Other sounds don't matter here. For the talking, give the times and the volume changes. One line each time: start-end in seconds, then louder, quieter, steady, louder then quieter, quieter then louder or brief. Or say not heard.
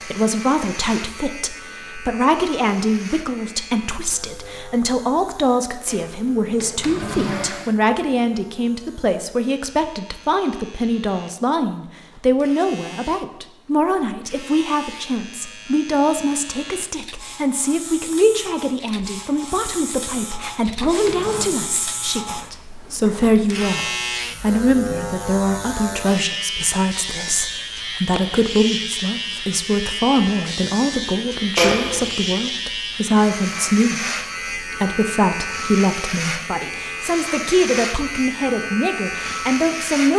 0.1-40.1 steady.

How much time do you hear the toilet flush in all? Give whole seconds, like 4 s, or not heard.
4 s.